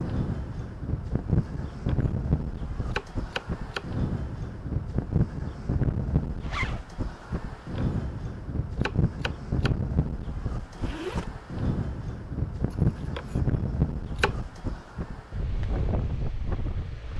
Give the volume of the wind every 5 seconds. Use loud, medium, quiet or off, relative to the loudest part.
loud, loud, loud, medium.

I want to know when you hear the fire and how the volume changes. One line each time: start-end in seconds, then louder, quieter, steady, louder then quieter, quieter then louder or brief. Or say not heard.
not heard.